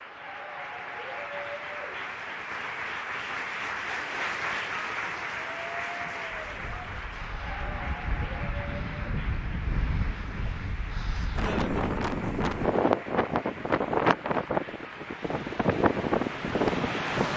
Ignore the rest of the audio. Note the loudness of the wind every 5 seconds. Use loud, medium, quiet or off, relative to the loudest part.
off, medium, loud, loud.